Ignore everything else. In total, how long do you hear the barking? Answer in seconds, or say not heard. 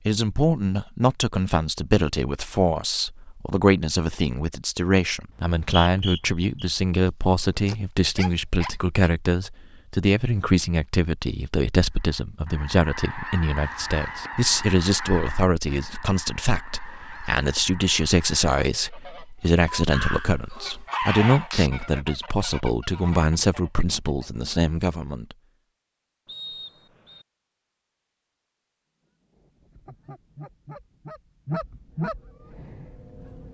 4 s.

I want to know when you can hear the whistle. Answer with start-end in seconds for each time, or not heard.
5.3-6.7, 26.2-27.2.